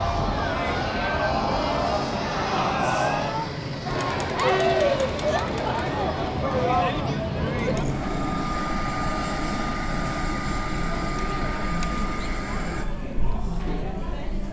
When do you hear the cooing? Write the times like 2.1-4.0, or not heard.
not heard.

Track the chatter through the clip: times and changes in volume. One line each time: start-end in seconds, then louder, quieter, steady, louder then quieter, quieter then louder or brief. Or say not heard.
0.0-14.4 quieter.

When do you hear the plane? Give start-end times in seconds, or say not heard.
0.0-12.8.